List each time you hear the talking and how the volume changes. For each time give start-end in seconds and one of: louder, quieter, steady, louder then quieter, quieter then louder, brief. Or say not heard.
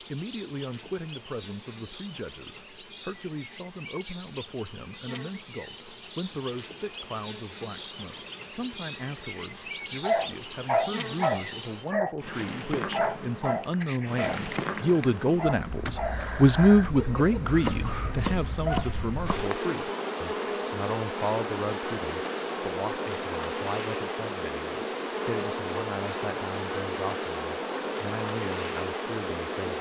0.0-29.7 louder then quieter.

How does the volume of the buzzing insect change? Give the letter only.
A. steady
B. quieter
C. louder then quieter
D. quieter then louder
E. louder
E.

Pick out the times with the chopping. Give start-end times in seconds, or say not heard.
17.6-19.5.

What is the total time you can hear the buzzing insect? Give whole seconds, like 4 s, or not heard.
30 s.